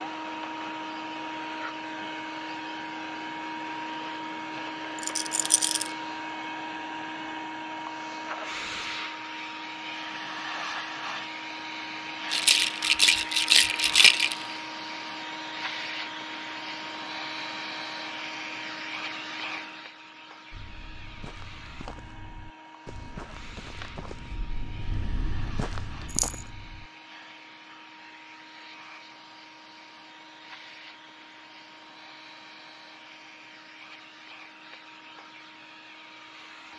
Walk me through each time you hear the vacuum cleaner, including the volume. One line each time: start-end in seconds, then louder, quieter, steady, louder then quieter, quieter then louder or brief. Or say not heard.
0.0-36.7 quieter.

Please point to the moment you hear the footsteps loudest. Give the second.
26 s.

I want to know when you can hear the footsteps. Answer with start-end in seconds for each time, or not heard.
20.5-26.9.